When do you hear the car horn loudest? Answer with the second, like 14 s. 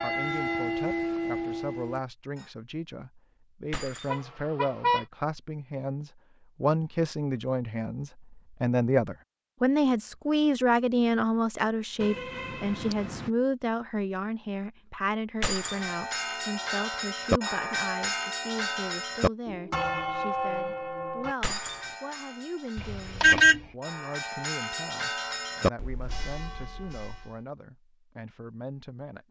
23 s.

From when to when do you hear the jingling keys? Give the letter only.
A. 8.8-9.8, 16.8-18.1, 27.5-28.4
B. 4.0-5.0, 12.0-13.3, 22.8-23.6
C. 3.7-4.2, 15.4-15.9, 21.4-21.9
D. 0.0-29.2
C.